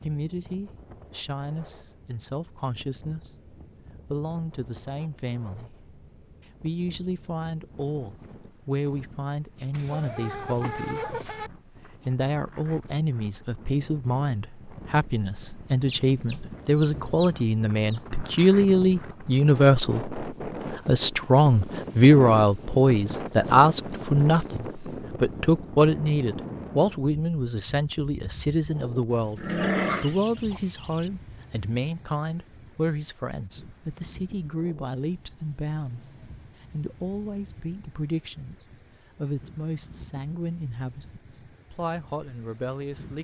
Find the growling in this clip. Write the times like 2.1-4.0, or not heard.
29.4-30.1.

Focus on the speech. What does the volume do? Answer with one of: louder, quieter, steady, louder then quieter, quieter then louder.
louder then quieter.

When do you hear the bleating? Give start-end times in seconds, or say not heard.
not heard.